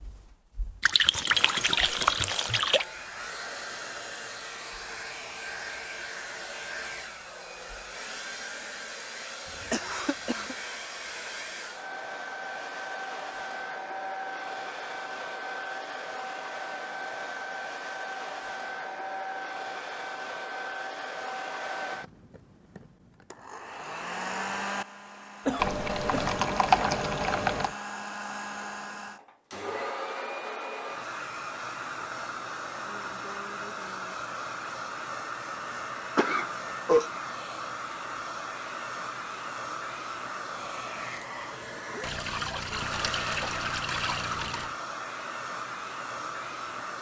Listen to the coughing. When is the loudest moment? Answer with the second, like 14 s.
37 s.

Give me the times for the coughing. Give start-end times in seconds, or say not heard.
9.6-10.6, 25.4-26.4, 36.1-37.0.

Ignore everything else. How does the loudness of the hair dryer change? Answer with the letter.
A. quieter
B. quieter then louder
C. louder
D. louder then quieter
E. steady
E.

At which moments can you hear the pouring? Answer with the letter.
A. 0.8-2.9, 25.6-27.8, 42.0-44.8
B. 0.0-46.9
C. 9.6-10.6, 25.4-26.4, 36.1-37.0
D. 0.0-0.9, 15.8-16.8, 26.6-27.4
A.